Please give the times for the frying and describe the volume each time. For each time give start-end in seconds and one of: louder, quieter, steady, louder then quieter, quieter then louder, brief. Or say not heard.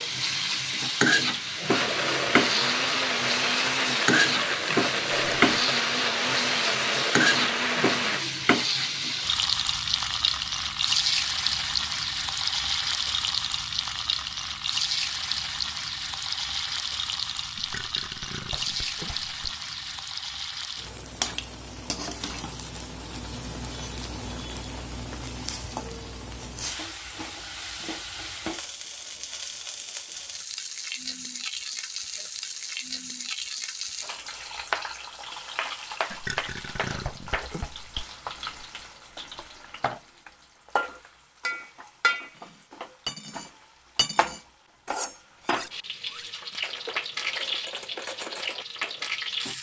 0.0-49.5 quieter.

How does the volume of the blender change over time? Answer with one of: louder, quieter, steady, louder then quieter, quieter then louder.
steady.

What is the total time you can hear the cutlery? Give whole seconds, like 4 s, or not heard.
7 s.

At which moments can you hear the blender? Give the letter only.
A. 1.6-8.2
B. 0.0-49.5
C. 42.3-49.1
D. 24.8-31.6
A.